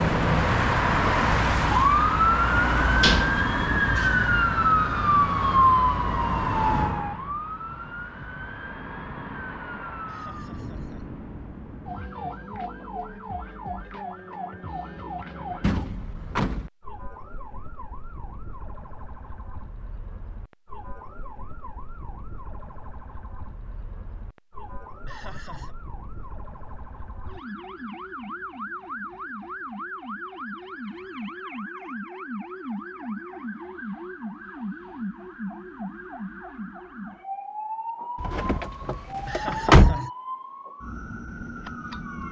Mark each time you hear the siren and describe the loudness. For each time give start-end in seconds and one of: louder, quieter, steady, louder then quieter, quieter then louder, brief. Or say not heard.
0.0-42.2 quieter then louder.